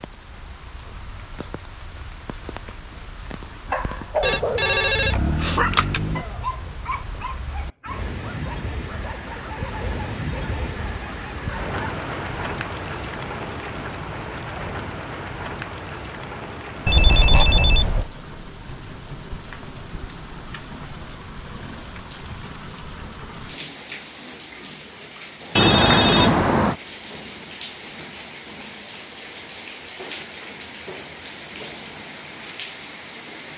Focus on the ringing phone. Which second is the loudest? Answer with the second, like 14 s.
26 s.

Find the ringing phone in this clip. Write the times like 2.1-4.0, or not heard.
4.2-6.2, 16.9-18.1, 25.6-26.8.